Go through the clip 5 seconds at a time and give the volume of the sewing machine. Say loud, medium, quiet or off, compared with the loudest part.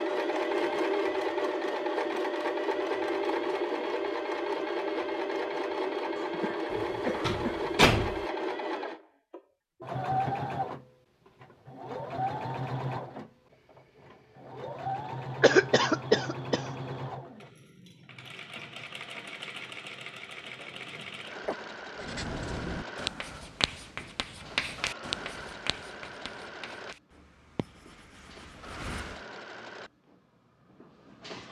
loud, loud, medium, medium, quiet, quiet, quiet.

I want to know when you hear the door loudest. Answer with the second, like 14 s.
8 s.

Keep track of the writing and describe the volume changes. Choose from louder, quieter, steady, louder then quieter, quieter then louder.
quieter.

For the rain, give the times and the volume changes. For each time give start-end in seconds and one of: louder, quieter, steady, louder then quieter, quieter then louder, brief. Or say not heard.
not heard.